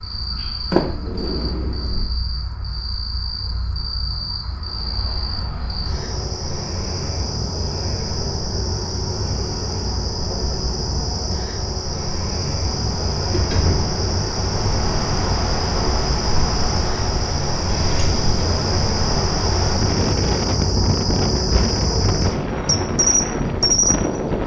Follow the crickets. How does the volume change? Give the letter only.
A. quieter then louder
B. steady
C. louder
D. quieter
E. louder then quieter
C.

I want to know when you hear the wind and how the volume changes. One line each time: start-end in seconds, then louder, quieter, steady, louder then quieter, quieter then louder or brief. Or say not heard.
4.4-24.4 louder.